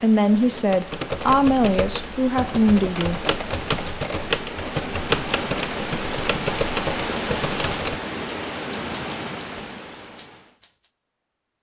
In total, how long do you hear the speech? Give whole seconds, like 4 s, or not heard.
3 s.